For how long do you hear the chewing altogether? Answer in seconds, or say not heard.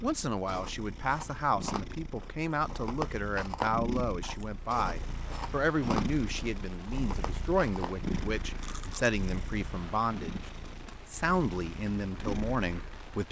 9 s.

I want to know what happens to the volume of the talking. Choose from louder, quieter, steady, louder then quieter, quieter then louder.
steady.